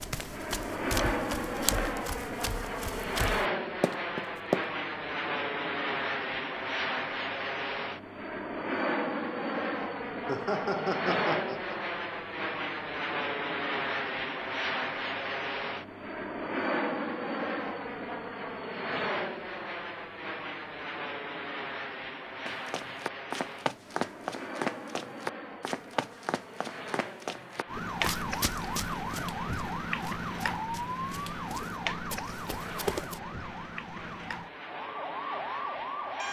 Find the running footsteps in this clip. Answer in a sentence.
You can hear the running footsteps from 0.0 to 4.7 s and from 22.4 to 33.2 s.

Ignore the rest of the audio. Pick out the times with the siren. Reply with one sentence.
You can hear the siren from 27.6 to 36.2 s.